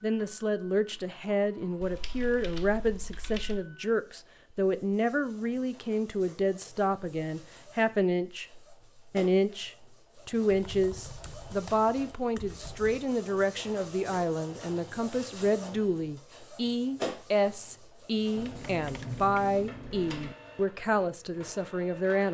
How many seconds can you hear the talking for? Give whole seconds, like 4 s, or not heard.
22 s.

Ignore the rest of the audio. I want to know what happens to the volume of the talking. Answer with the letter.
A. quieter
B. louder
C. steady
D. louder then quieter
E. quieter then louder
C.